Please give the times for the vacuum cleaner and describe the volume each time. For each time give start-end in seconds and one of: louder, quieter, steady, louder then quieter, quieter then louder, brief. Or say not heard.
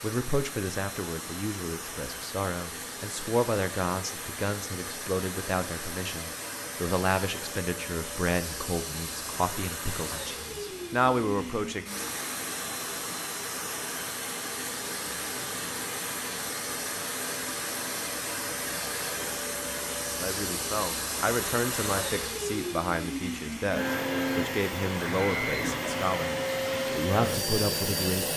0.0-28.3 louder.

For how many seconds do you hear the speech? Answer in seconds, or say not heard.
20 s.